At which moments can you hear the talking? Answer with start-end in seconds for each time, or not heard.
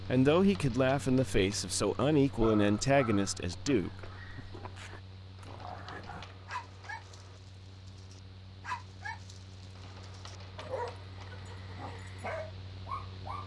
0.0-4.1.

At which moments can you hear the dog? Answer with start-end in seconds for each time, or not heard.
2.2-13.4.